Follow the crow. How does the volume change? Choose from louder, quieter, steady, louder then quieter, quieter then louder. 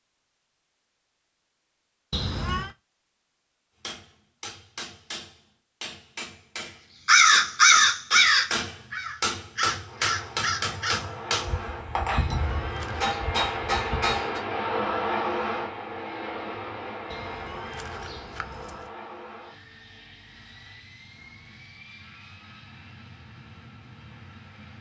quieter.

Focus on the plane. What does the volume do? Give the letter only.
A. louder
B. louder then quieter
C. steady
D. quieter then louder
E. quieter
B.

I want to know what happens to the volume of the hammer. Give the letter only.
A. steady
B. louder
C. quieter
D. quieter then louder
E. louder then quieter
B.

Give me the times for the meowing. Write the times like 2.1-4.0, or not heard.
2.1-2.8, 12.1-13.3, 17.1-18.9.